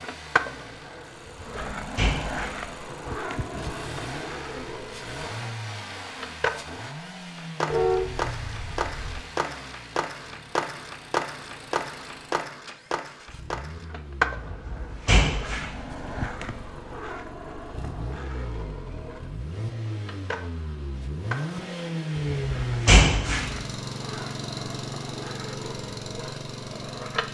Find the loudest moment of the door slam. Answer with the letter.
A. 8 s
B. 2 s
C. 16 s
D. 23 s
D.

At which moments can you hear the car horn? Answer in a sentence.
You can hear the car horn from 7.7 to 9.2 s.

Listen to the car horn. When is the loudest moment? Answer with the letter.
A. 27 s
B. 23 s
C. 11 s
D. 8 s
D.